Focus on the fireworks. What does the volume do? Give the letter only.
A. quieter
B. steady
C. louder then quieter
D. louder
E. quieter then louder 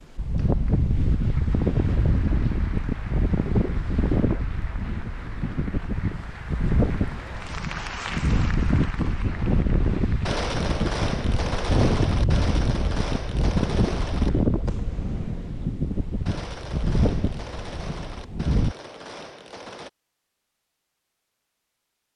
A.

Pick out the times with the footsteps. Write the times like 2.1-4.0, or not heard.
not heard.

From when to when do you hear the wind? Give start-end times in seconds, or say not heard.
0.1-18.8.